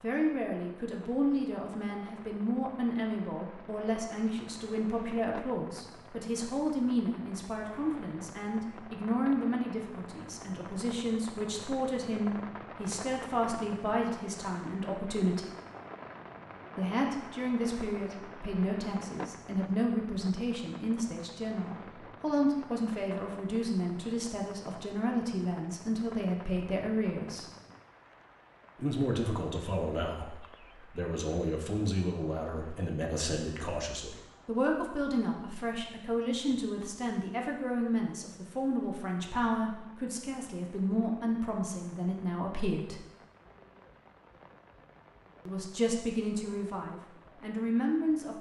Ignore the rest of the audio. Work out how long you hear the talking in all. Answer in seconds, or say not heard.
43 s.